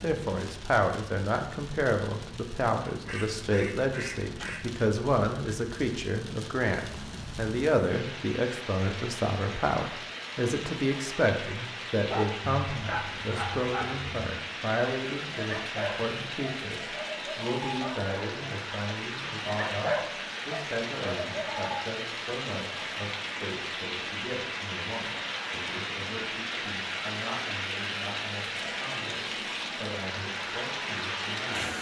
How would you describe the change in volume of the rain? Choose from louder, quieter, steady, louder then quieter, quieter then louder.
louder.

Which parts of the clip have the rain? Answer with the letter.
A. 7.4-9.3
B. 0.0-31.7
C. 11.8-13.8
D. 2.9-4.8
B.